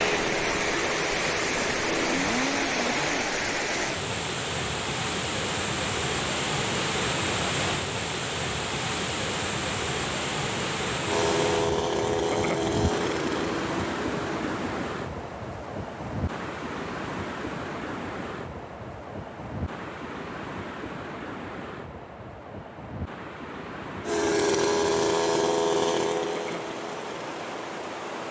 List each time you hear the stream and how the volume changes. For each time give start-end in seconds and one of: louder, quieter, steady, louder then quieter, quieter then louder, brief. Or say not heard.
0.0-28.2 quieter.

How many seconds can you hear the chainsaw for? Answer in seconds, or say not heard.
11 s.